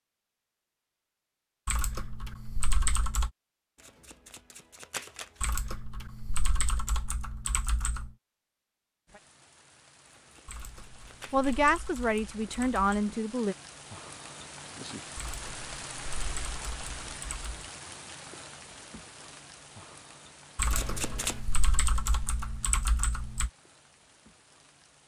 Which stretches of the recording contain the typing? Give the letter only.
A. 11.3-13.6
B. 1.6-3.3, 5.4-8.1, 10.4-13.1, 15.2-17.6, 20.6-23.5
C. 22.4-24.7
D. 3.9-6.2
B.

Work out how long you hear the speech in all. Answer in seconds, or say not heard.
2 s.